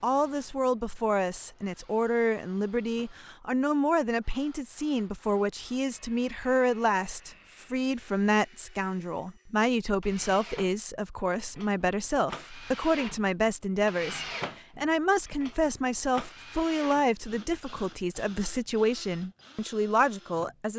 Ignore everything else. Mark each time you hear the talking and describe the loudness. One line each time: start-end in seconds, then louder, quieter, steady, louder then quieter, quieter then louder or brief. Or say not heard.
0.0-20.7 steady.